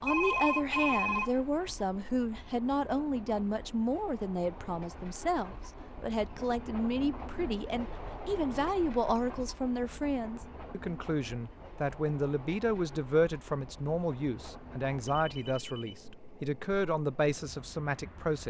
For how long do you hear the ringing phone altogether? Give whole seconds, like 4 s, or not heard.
2 s.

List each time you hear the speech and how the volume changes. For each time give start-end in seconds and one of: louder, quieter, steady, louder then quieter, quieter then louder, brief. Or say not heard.
0.0-18.4 steady.